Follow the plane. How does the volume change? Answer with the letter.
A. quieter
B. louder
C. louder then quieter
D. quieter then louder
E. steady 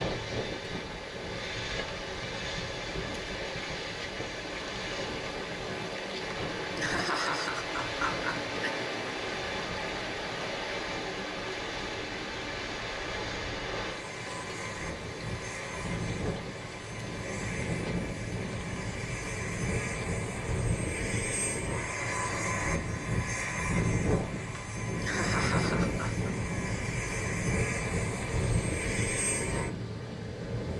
B.